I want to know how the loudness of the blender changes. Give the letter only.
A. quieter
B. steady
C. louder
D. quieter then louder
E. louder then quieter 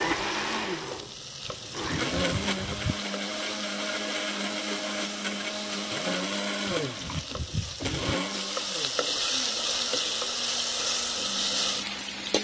A.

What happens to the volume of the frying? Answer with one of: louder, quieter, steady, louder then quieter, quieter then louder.
louder.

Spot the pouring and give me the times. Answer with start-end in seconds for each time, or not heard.
1.4-3.0, 6.8-8.2.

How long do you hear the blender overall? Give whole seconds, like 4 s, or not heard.
12 s.